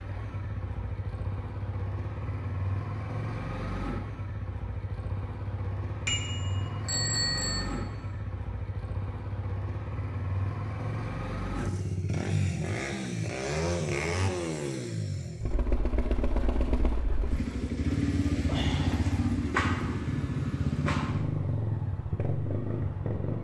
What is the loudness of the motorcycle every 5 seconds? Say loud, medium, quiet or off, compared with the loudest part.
medium, medium, loud, loud, loud.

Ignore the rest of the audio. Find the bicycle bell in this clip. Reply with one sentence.
The bicycle bell can be heard from 6.0 to 7.6 s.